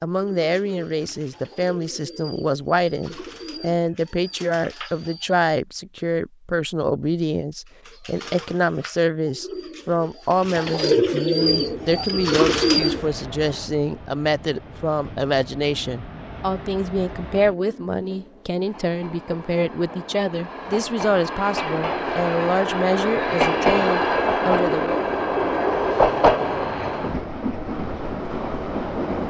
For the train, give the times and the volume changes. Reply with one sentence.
You can hear the train from 11.3 to 29.2 s, getting louder.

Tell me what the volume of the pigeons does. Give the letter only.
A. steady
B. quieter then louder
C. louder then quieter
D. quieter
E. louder
E.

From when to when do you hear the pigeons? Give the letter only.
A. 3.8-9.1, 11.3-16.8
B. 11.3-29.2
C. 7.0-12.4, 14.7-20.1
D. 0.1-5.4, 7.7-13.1
D.